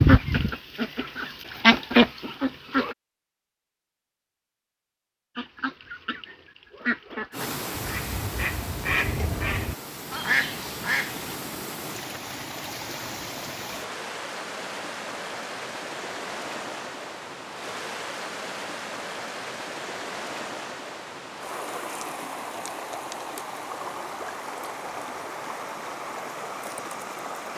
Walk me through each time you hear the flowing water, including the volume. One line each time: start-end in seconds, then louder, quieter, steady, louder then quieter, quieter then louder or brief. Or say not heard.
7.3-27.5 steady.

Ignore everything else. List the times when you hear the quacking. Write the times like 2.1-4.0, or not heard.
0.0-3.0, 5.3-11.3.